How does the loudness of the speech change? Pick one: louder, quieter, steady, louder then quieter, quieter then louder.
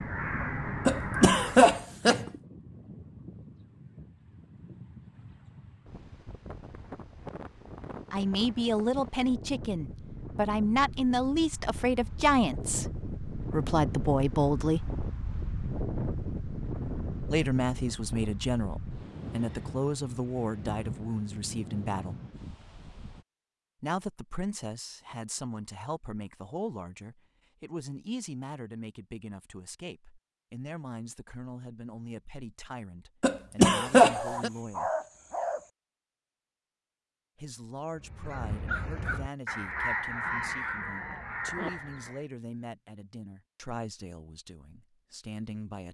quieter.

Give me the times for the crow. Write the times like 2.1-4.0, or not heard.
0.0-1.8, 38.0-42.2.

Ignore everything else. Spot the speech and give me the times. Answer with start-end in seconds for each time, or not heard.
8.1-14.8, 17.3-22.1, 23.8-34.9, 37.4-45.8.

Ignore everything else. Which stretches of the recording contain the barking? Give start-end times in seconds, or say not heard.
34.1-35.6.